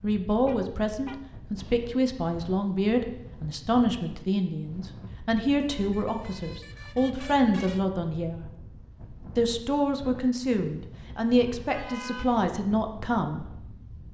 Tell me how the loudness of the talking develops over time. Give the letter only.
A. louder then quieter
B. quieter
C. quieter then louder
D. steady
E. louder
D.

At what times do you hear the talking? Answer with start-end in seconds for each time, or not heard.
0.0-8.5, 9.3-13.4.